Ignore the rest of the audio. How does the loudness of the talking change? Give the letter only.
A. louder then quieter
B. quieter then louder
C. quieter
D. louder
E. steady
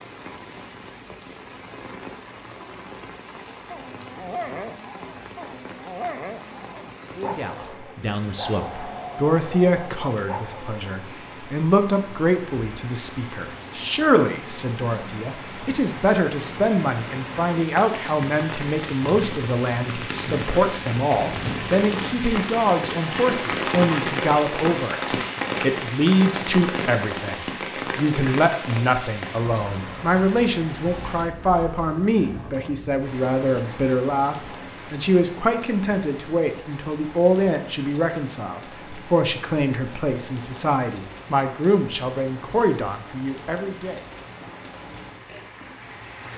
E.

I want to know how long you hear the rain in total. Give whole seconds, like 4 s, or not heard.
46 s.